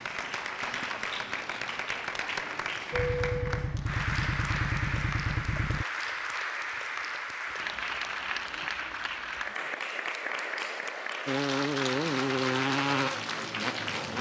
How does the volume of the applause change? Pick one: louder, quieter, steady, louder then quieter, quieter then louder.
steady.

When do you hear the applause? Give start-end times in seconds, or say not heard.
0.0-14.1.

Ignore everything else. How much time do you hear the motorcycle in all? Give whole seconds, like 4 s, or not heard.
6 s.